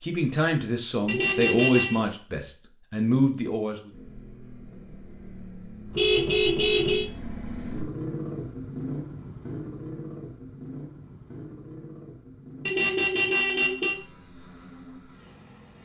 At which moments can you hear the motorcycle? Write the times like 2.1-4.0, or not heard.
3.9-15.8.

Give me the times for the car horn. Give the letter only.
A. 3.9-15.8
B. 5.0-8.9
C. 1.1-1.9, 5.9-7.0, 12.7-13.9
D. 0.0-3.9
C.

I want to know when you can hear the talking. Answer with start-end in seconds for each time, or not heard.
0.0-3.9.